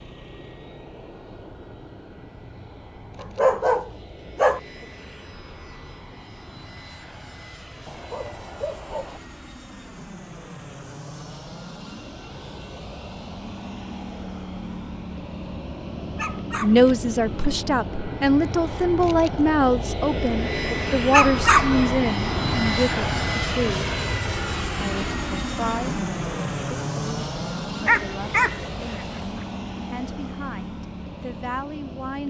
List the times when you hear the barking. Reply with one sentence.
You can hear the barking from 3.2 to 4.6 s, from 7.8 to 9.2 s, from 16.1 to 16.9 s, from 21.1 to 21.9 s and from 27.9 to 29.2 s.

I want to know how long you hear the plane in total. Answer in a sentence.
You can hear the plane for 32 seconds altogether.